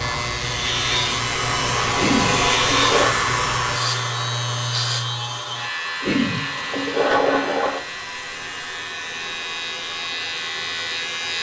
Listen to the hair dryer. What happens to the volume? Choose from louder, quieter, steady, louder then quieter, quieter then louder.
quieter.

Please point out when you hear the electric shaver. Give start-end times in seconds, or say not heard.
0.0-11.3.